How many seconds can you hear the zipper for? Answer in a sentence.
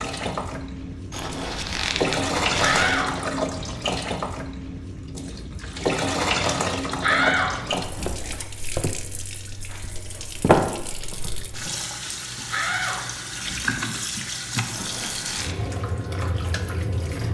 You can hear the zipper for 3 seconds altogether.